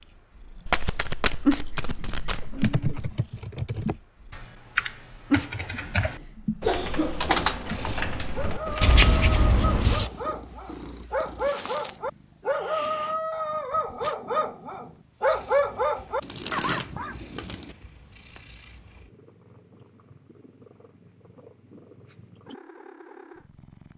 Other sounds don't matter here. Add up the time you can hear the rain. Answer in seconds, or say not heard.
not heard.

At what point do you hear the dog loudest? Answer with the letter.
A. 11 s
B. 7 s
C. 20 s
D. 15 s
D.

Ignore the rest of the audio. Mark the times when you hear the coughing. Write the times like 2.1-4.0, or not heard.
5.5-7.5.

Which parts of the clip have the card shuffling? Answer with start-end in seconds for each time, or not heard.
0.7-2.9, 8.8-10.1, 16.2-17.7.